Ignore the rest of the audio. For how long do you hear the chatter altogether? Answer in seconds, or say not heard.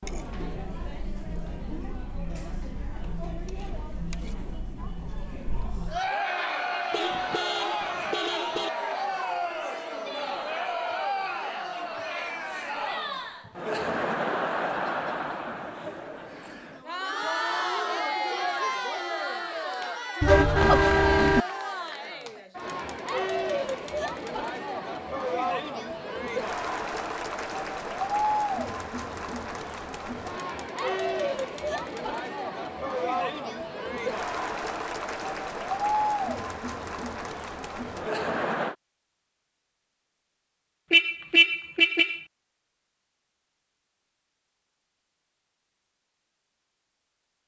39 s.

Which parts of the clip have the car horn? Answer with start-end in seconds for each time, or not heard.
6.9-8.7, 20.2-21.4, 40.9-42.2.